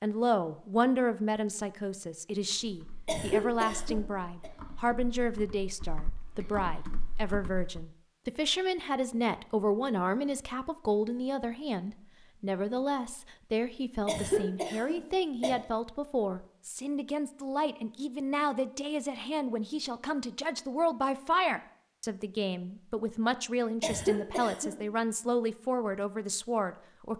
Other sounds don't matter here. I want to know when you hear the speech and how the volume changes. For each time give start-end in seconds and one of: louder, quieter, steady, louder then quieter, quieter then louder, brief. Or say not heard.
0.0-27.1 steady.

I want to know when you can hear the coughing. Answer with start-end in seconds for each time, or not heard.
3.0-4.5, 14.1-15.6, 23.8-24.8.